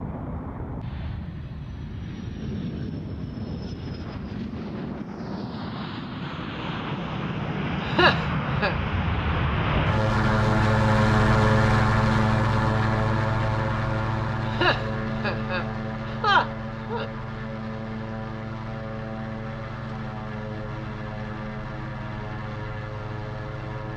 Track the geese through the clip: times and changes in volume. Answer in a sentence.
You can't hear the geese here.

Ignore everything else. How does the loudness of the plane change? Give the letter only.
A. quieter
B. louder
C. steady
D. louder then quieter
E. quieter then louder
D.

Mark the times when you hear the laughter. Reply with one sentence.
The laughter can be heard from 7.8 to 8.8 s and from 14.4 to 17.1 s.